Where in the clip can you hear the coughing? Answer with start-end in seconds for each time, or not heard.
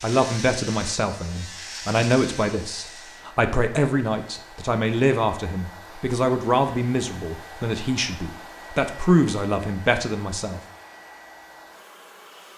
not heard.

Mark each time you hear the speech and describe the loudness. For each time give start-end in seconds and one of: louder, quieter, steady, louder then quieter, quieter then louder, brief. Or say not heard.
0.0-10.6 steady.